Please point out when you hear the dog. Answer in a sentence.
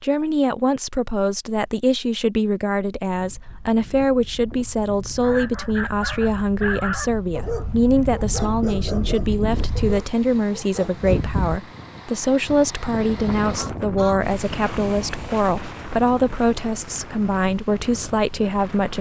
The dog can be heard from 5.2 to 11.2 s.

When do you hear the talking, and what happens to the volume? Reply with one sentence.
The talking can be heard from 0.0 to 18.9 s, at a steady volume.